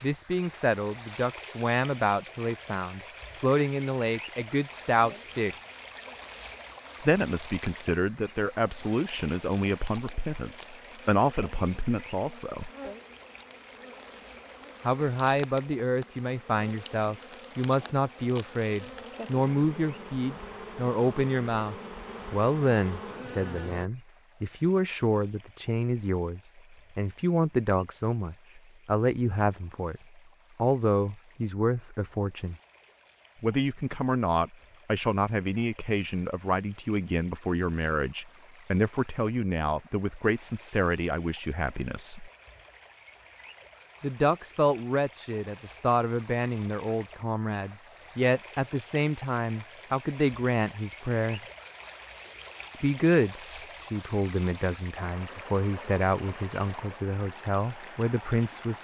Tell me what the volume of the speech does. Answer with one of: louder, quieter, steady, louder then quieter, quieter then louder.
steady.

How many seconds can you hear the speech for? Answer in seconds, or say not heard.
51 s.